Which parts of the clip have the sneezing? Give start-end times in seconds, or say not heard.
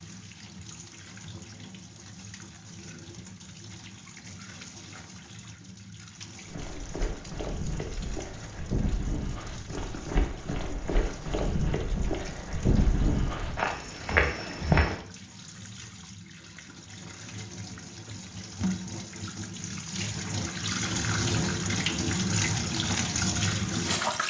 not heard.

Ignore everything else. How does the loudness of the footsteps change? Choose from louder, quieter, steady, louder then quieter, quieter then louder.
louder.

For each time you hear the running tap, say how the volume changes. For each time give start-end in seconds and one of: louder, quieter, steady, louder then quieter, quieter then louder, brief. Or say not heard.
0.0-24.2 louder.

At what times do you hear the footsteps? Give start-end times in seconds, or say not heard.
6.5-14.9.